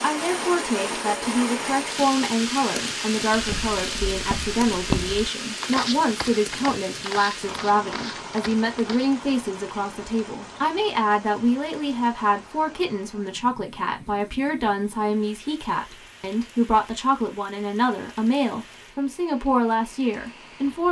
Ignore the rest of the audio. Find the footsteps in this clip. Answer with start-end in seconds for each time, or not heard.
3.3-9.2.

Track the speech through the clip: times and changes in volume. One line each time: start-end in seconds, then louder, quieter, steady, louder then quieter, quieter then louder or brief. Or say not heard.
0.0-20.8 steady.